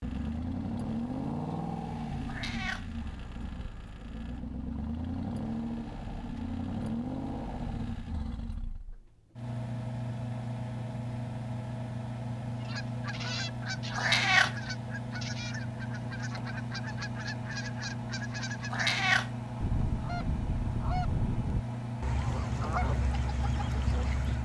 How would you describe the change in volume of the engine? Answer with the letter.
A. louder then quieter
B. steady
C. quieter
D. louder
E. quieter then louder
B.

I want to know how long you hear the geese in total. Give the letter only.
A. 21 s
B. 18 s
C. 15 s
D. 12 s
D.